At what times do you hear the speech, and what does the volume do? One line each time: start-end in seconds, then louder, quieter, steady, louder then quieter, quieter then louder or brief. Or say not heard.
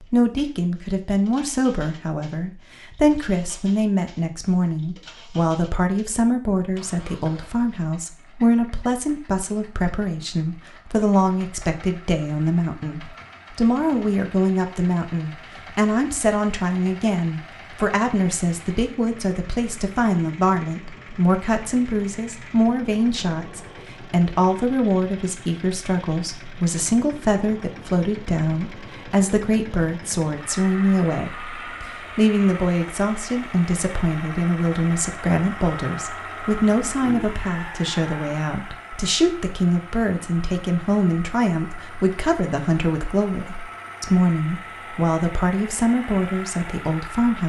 0.0-47.4 steady.